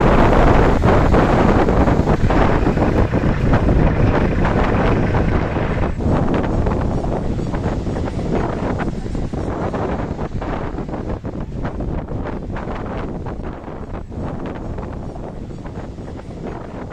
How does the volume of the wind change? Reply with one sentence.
The volume of the wind goes down.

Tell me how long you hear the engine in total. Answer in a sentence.
The engine can be heard for 4 seconds in total.